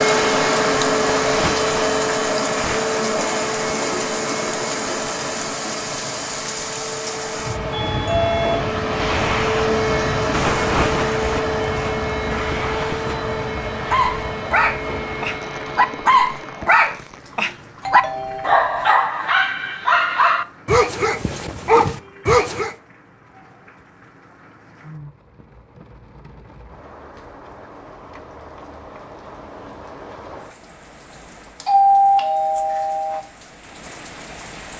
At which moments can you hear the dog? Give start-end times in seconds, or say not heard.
13.9-22.8.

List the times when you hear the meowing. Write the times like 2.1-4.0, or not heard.
not heard.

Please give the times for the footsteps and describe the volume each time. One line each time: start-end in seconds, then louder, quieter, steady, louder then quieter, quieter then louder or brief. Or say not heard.
not heard.